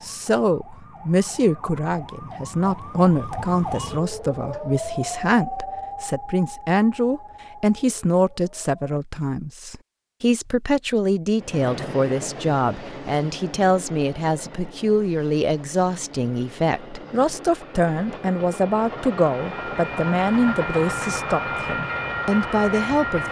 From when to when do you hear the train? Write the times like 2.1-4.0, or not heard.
11.4-23.2.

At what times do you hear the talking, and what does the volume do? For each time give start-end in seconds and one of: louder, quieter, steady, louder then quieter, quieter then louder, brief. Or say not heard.
0.0-23.2 steady.